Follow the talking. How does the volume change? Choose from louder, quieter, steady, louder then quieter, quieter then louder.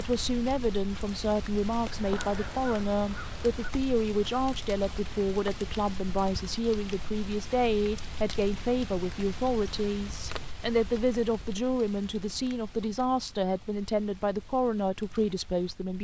steady.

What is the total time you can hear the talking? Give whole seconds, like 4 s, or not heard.
16 s.